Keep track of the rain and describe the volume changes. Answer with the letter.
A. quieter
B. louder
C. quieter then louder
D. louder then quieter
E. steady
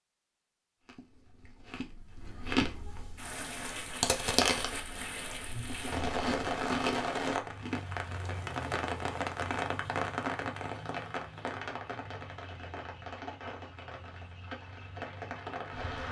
D.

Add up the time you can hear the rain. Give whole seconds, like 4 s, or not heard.
13 s.